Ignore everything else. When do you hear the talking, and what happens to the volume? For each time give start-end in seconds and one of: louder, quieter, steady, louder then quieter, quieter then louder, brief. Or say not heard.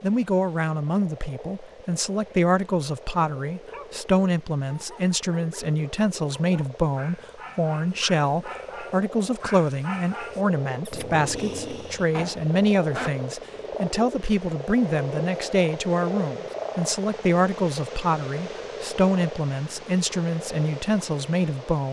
0.0-21.8 steady.